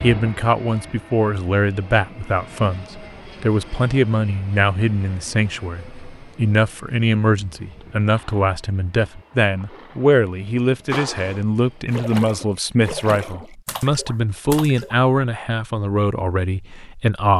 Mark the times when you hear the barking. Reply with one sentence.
The barking can't be heard in this clip.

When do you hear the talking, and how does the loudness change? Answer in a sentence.
The talking can be heard from 0.0 to 17.3 s, at a steady volume.